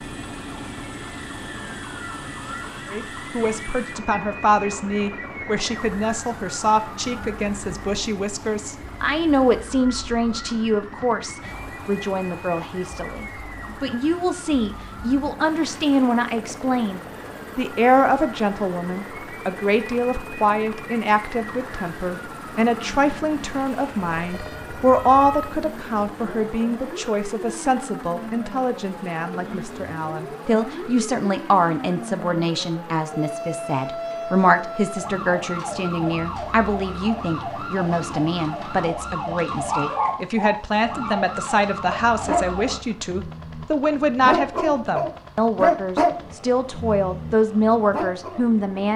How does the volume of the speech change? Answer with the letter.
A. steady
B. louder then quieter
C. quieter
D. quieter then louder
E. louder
A.